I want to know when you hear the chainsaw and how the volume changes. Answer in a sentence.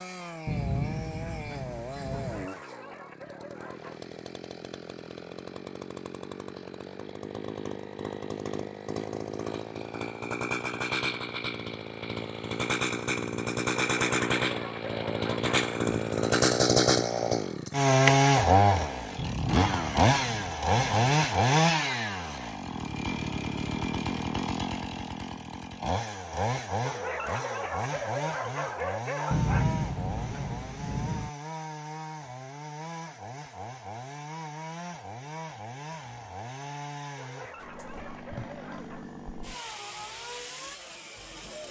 You can hear the chainsaw from 0.0 to 41.6 s, getting louder then quieter.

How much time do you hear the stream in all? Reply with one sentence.
You can't hear the stream here.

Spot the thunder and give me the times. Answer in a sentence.
You can hear the thunder from 0.5 to 2.5 s, from 19.1 to 20.9 s and from 29.3 to 31.3 s.